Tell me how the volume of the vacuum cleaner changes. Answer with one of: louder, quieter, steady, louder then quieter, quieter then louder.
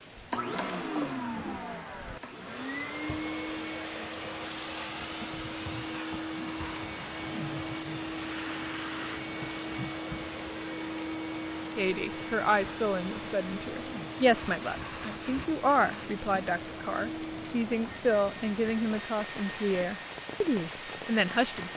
quieter.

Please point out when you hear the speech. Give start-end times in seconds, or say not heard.
11.8-21.7.